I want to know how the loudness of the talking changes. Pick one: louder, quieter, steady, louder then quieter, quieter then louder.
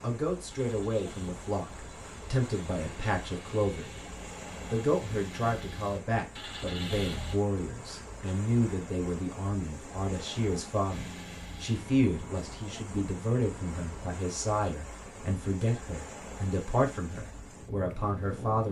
steady.